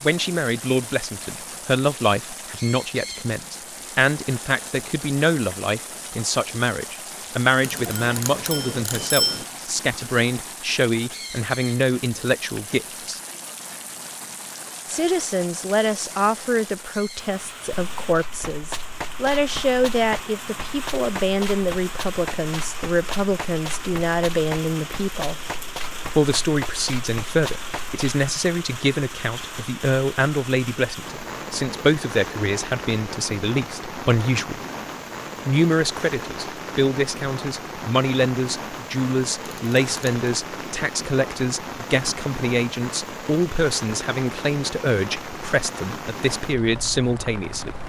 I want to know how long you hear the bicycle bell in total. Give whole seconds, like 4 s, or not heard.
3 s.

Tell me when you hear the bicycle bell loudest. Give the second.
9 s.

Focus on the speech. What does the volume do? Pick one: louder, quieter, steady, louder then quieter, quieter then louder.
steady.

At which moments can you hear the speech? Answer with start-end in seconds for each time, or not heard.
0.0-13.2, 14.8-25.4, 26.1-34.6, 35.5-47.7.